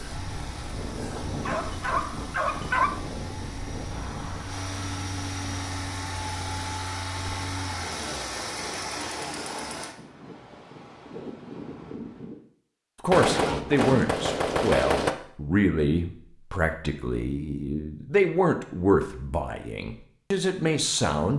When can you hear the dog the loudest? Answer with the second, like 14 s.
3 s.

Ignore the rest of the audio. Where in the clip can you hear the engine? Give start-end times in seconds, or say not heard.
0.0-9.9.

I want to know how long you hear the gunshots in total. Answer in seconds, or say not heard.
2 s.